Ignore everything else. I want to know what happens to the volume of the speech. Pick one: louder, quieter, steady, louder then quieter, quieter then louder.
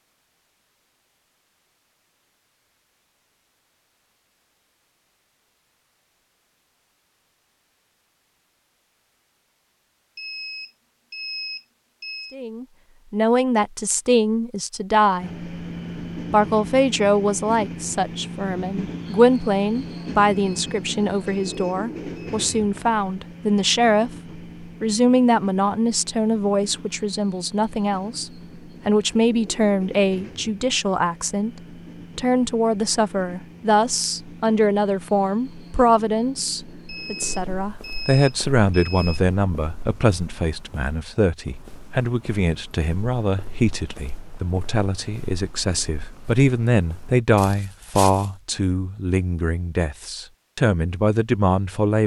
steady.